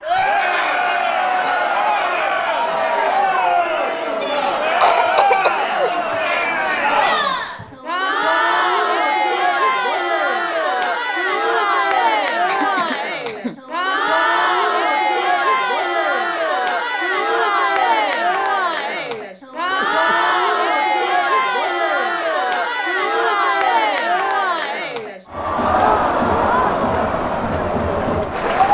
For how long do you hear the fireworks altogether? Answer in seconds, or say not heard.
not heard.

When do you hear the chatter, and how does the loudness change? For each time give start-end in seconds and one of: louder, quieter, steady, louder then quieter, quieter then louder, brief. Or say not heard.
0.0-28.6 steady.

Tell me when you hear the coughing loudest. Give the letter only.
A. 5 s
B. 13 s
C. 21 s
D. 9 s
A.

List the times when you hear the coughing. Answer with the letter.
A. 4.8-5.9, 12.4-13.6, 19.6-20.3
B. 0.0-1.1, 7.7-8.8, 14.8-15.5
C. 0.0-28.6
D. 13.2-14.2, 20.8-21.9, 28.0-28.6
A.